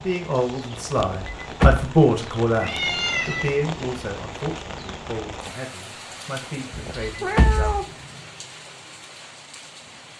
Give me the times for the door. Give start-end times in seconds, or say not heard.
0.9-1.9, 6.7-7.8.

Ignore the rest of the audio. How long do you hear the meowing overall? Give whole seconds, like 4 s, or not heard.
2 s.